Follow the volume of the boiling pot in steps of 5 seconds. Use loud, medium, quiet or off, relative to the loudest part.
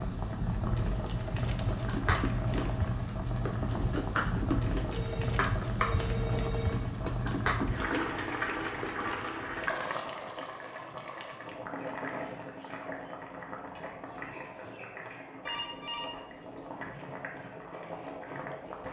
loud, loud, medium, medium.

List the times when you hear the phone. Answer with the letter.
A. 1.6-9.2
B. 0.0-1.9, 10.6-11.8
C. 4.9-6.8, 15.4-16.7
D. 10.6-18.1
C.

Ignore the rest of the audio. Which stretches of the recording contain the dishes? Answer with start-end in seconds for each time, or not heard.
1.6-9.2.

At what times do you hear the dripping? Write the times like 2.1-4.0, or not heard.
not heard.